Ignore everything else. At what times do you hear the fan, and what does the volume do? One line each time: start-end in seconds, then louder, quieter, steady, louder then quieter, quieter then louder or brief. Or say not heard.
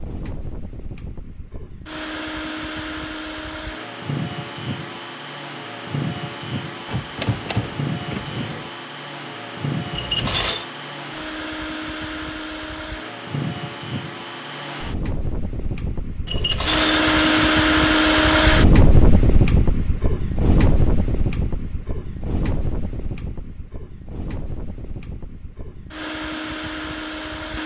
0.0-27.6 louder then quieter.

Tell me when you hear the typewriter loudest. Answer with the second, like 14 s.
7 s.